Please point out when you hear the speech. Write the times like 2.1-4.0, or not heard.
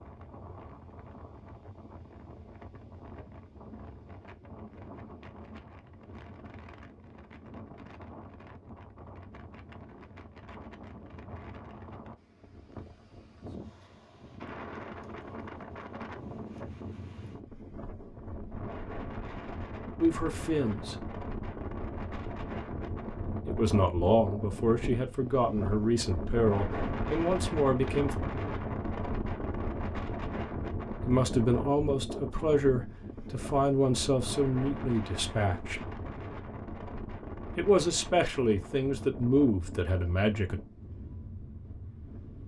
20.0-20.9, 23.4-28.1, 31.1-35.8, 37.5-40.6.